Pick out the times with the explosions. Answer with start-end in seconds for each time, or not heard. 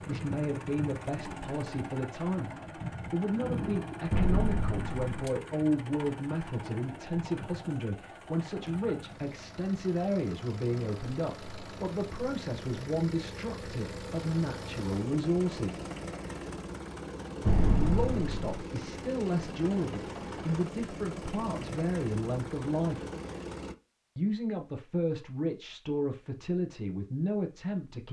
4.1-5.1, 17.4-18.6.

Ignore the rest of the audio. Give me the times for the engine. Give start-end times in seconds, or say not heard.
0.0-23.8.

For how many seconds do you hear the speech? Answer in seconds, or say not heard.
25 s.